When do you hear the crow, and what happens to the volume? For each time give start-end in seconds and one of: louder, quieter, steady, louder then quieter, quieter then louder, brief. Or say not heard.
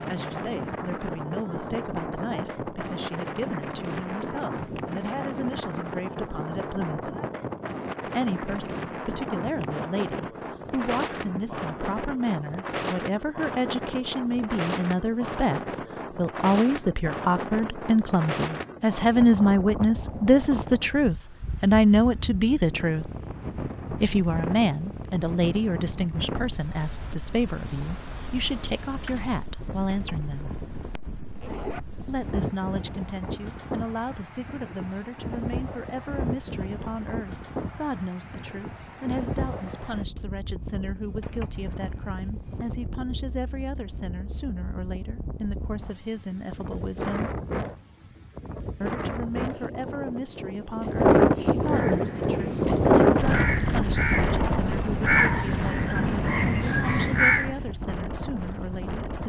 51.7-57.6 louder.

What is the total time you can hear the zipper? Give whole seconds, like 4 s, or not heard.
4 s.